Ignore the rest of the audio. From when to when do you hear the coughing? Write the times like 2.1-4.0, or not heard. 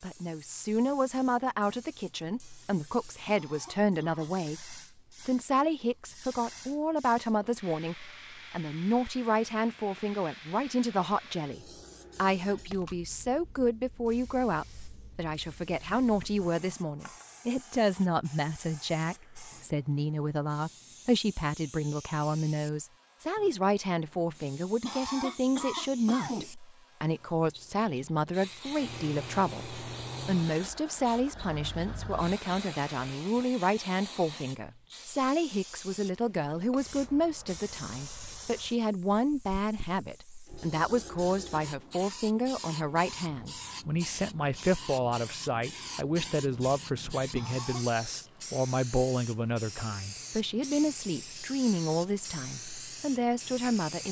3.2-4.3, 24.8-26.6, 47.3-47.9.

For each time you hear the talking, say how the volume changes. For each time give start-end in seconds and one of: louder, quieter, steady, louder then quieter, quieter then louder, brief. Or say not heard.
0.0-54.0 steady.